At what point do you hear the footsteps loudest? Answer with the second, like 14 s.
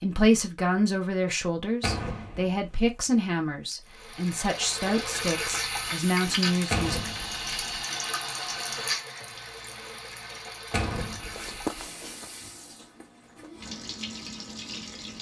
12 s.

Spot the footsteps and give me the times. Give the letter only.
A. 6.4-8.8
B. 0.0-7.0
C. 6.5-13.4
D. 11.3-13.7
D.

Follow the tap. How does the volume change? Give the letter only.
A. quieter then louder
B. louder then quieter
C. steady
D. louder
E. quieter
E.